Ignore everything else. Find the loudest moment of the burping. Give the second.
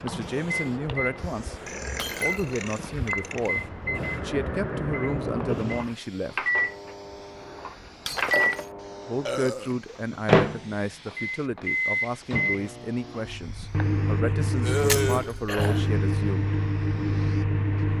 15 s.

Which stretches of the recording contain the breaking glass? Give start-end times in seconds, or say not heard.
1.9-2.4, 8.1-8.7, 14.8-15.3.